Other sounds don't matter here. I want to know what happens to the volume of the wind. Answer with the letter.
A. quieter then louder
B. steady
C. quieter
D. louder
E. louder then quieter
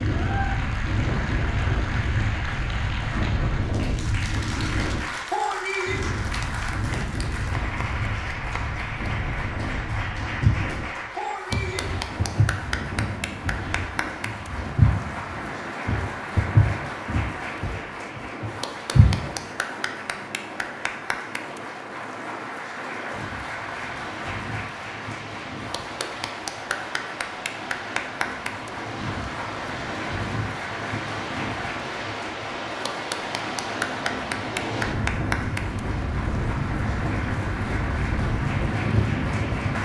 A.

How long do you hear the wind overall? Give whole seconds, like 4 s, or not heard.
40 s.